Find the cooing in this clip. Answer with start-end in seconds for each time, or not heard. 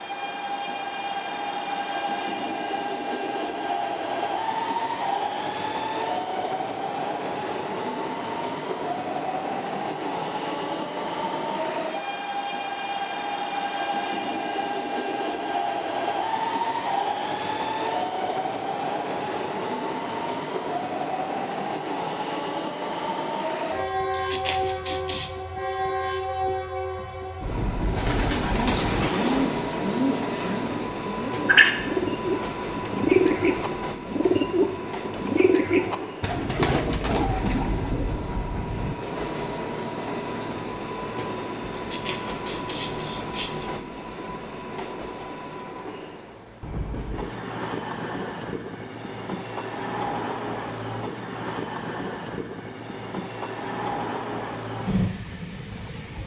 27.8-38.0.